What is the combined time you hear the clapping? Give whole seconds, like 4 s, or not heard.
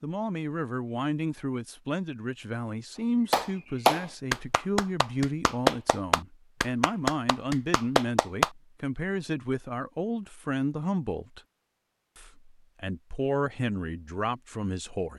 5 s.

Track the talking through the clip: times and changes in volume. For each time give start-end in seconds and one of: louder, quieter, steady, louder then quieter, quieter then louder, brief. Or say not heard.
0.0-11.4 steady
12.2-15.1 brief.